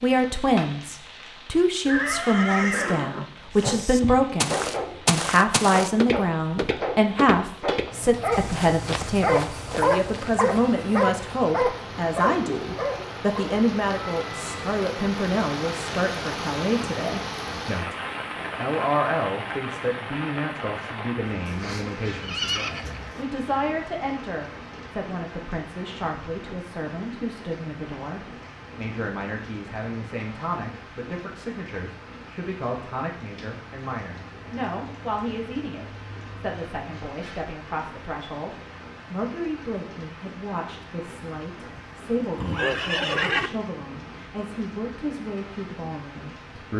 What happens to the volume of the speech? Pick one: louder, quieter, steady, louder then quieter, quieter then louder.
quieter.